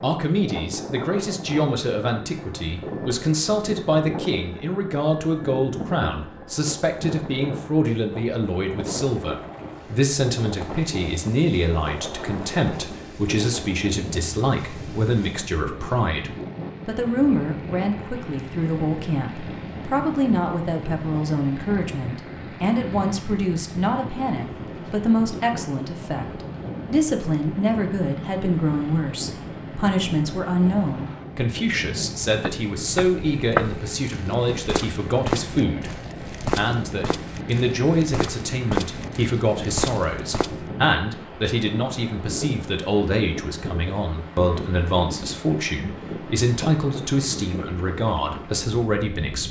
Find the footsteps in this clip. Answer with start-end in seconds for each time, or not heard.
32.4-40.6.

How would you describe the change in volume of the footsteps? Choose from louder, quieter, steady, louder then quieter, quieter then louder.
quieter then louder.